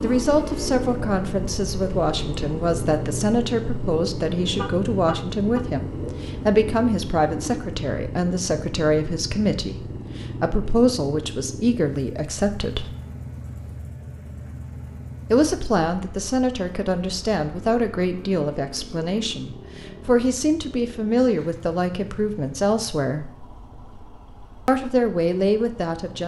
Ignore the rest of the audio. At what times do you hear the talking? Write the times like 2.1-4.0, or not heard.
0.0-12.9, 15.3-23.3, 24.6-26.2.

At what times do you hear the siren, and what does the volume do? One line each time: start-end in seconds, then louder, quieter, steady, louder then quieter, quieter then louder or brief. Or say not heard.
not heard.